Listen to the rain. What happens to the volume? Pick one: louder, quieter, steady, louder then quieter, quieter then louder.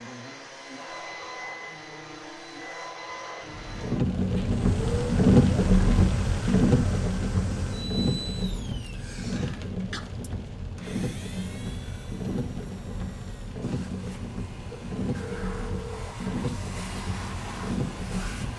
quieter.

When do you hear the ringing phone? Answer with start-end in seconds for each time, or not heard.
14.7-16.1.